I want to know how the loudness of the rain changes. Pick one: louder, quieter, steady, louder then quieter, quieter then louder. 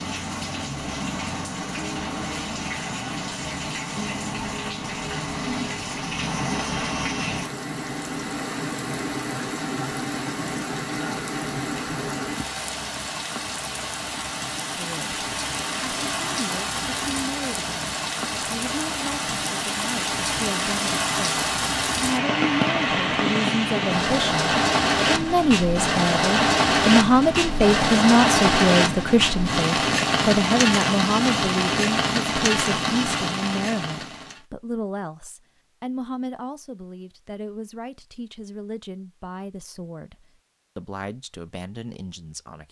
louder.